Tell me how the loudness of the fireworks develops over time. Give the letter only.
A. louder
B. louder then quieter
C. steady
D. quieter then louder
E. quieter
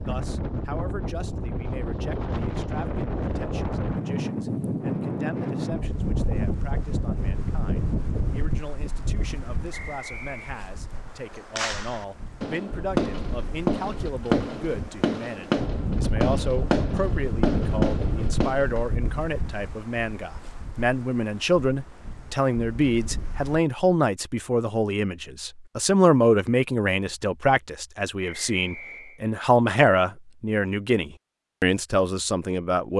C.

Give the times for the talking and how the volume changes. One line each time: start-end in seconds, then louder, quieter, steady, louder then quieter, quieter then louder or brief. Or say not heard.
0.1-32.9 louder.